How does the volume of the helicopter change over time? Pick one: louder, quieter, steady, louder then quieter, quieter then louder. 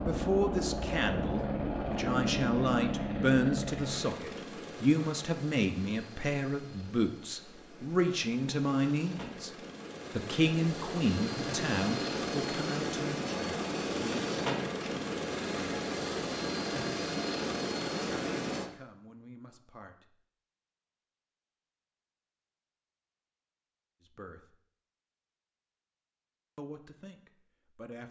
quieter then louder.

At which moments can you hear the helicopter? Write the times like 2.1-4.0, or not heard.
0.0-18.7.